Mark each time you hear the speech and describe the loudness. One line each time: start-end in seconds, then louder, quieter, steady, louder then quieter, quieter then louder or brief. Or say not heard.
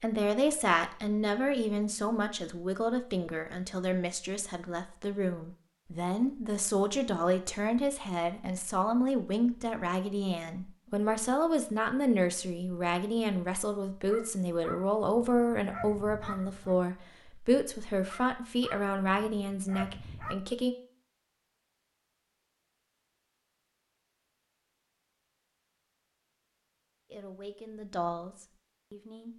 0.0-20.8 steady
27.1-29.3 brief.